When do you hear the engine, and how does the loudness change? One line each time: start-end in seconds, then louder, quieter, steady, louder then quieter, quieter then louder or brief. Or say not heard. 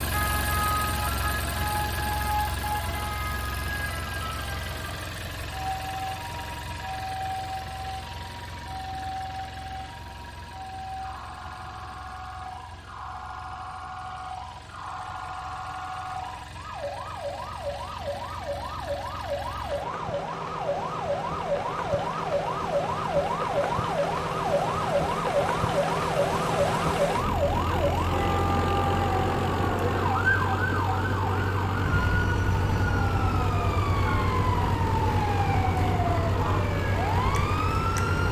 0.0-38.2 quieter then louder.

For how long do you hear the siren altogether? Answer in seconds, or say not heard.
38 s.